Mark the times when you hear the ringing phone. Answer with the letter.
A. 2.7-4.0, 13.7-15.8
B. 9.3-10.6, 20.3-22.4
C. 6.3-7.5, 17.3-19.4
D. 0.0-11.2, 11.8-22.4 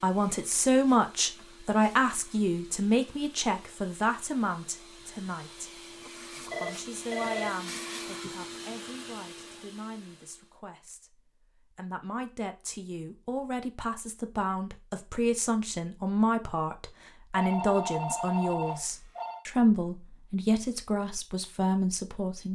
C.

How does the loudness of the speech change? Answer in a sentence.
The loudness of the speech goes down, then up.